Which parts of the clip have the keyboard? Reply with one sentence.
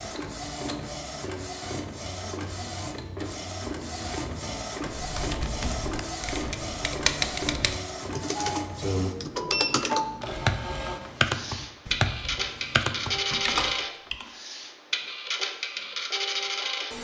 You can hear the keyboard from 4.9 to 14.3 s.